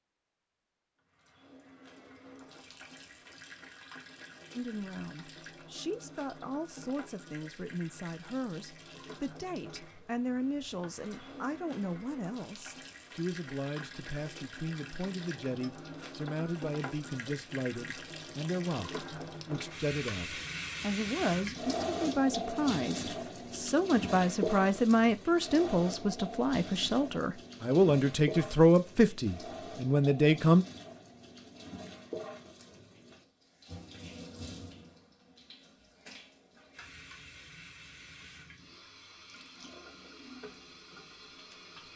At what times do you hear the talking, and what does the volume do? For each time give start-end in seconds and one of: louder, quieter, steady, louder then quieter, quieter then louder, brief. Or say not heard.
4.5-30.6 louder.